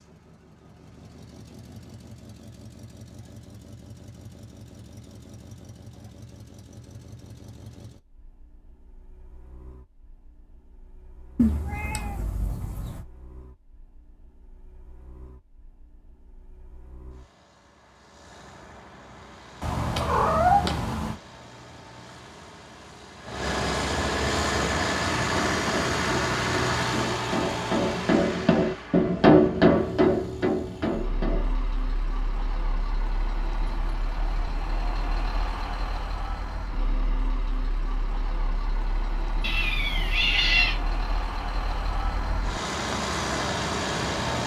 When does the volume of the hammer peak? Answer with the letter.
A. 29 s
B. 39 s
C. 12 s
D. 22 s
A.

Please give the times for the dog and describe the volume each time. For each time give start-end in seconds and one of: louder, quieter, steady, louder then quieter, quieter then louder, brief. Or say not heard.
not heard.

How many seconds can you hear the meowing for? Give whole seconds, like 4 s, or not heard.
5 s.